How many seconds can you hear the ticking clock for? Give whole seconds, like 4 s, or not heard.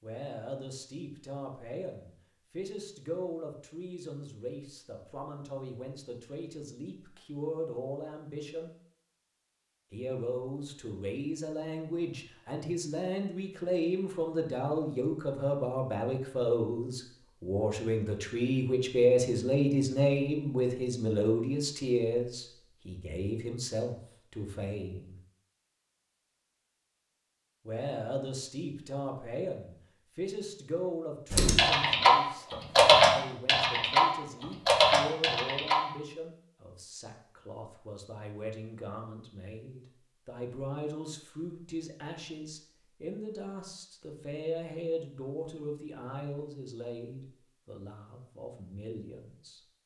not heard.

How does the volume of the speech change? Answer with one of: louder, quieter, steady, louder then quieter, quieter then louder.
louder then quieter.